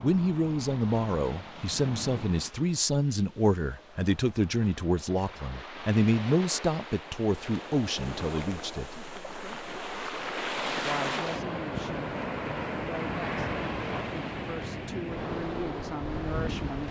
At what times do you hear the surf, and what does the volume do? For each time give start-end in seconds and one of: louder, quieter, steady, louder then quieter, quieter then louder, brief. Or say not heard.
0.0-16.8 louder.